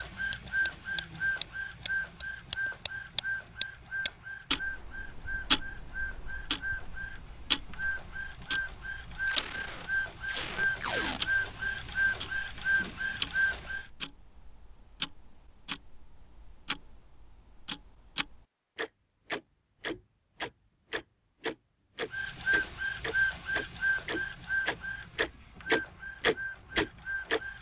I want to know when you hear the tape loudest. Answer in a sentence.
The loudest moment of the tape is at 11 seconds.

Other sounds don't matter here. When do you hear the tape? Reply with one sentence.
The tape can be heard from 9.2 to 11.2 s.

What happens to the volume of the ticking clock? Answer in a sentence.
The loudness of the ticking clock goes down, then up.